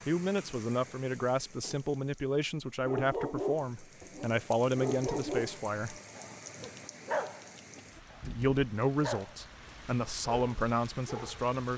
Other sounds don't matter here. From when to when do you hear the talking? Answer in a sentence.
You can hear the talking from 0.1 to 6.0 s and from 8.2 to 11.7 s.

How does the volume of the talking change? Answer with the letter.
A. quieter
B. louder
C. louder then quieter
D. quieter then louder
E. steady
E.